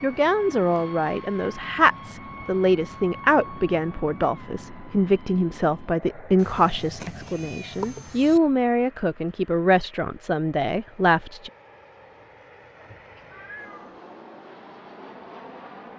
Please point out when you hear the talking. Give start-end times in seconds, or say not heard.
0.0-11.5.